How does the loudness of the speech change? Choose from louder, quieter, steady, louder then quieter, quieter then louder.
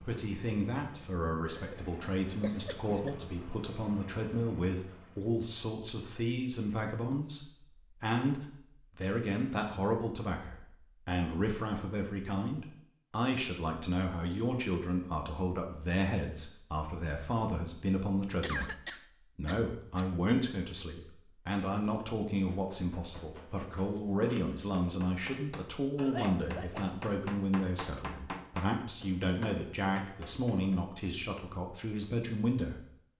steady.